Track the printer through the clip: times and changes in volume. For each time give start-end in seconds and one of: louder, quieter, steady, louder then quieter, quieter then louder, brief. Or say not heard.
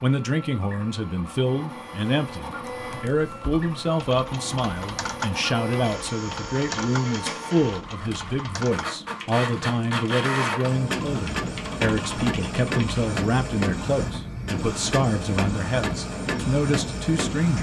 0.0-17.5 louder.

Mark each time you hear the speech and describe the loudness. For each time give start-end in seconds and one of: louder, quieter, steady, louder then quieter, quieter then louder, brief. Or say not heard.
0.0-17.5 steady.